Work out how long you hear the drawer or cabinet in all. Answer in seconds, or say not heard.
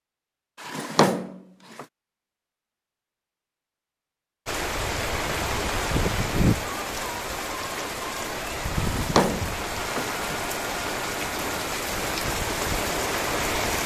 3 s.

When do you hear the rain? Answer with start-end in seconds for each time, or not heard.
4.5-13.8.